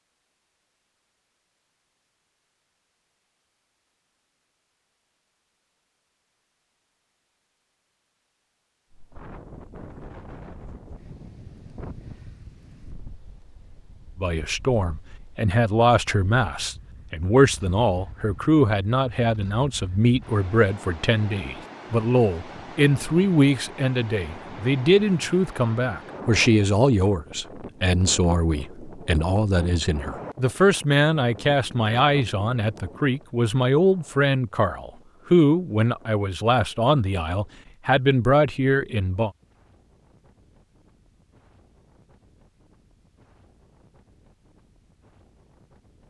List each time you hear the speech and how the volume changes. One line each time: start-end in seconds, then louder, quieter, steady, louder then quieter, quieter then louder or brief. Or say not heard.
14.2-39.3 steady.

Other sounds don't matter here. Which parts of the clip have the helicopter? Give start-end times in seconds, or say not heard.
not heard.